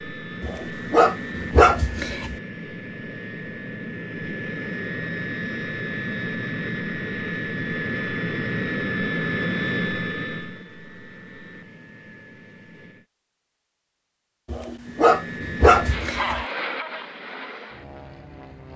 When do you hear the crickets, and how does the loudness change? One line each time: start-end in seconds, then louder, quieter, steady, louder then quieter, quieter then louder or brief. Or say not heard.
not heard.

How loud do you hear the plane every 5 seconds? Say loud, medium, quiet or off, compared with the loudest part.
medium, loud, medium, medium.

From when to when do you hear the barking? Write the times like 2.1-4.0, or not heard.
0.4-2.4, 14.5-16.4.